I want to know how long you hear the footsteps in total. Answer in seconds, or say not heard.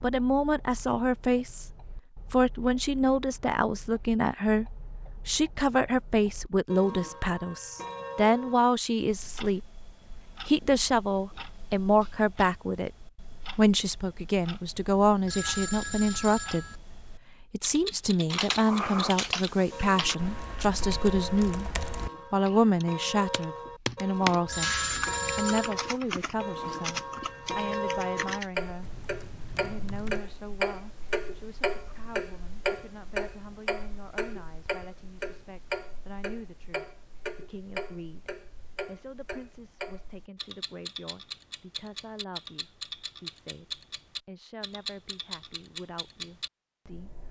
not heard.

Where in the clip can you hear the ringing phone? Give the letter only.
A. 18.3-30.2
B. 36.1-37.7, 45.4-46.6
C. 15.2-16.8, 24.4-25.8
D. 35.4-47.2
C.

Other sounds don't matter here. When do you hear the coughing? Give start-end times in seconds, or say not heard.
not heard.